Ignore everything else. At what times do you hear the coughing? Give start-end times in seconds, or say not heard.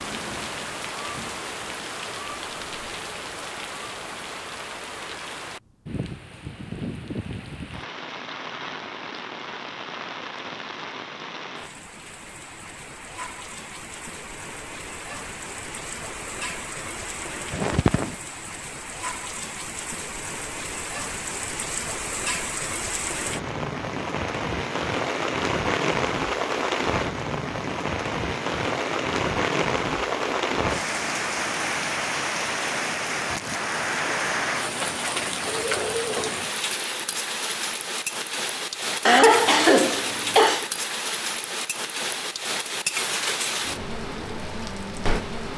17.5-18.1, 39.0-40.6.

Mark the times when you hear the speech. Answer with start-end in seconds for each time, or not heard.
not heard.